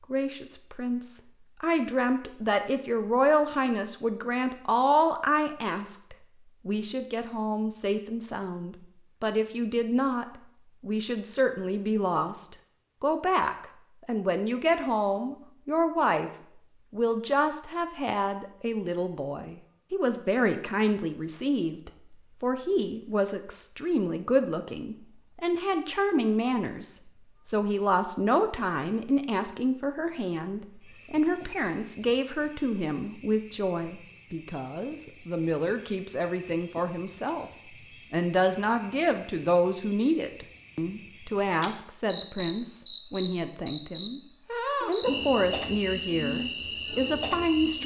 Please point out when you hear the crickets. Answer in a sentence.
You can hear the crickets from 0.0 to 47.8 s.